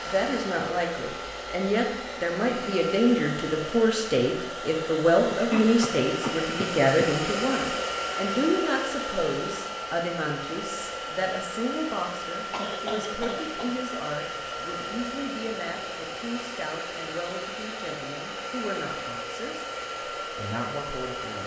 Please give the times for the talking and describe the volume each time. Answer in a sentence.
You can hear the talking from 0.1 to 21.4 s, getting quieter.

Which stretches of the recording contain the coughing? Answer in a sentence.
The coughing can be heard from 5.3 to 7.1 s and from 12.5 to 13.8 s.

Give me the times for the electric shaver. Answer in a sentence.
You can't hear the electric shaver here.